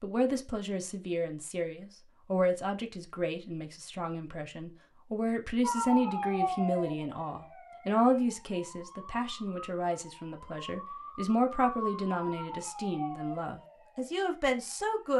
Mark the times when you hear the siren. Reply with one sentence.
The siren can be heard from 5.6 to 14.9 s.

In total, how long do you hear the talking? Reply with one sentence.
You can hear the talking for 15 seconds altogether.